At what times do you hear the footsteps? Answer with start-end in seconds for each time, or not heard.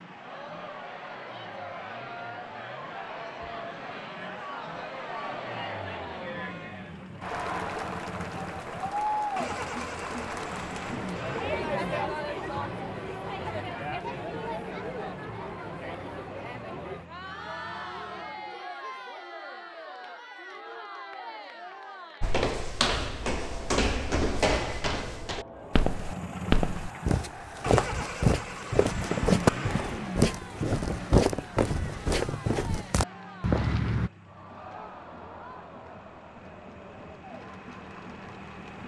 22.2-34.1.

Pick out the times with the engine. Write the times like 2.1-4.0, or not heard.
0.0-18.6, 25.6-38.8.